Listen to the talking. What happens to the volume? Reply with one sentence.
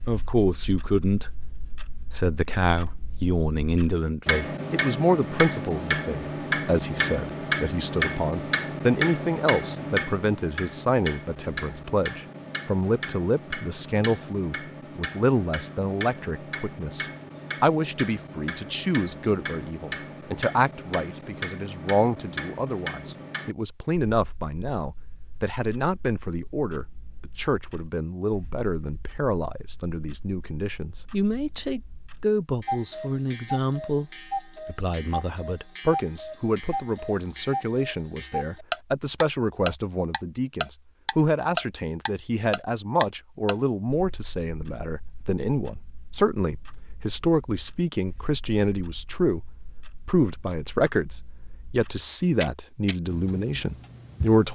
The volume of the talking stays about the same.